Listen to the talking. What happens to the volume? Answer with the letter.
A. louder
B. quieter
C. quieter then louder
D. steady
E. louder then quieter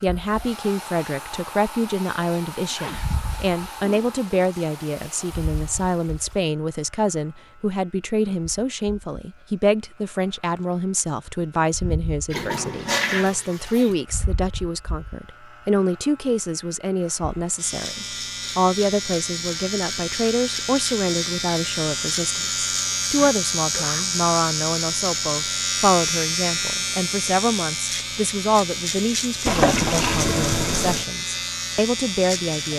D.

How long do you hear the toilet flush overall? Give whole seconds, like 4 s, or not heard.
6 s.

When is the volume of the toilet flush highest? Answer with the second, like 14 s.
30 s.